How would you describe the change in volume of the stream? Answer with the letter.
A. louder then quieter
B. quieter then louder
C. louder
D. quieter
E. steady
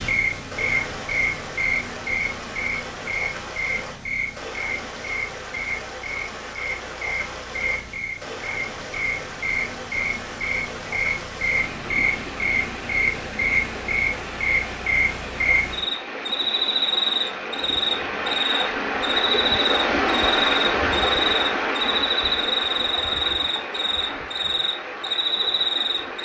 C.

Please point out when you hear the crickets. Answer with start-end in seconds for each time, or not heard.
0.0-26.2.